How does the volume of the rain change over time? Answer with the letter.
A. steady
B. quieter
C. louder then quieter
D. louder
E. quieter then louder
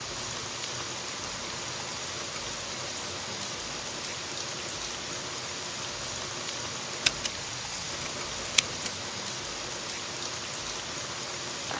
A.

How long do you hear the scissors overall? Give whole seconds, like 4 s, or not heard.
2 s.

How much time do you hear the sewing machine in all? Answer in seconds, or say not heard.
12 s.